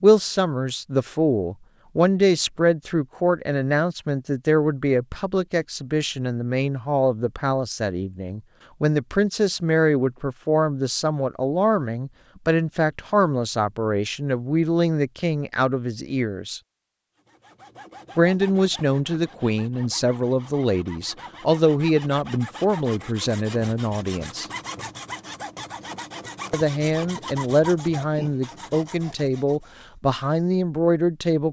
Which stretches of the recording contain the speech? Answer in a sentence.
You can hear the speech from 0.0 to 16.6 s, from 18.1 to 24.4 s and from 26.5 to 31.4 s.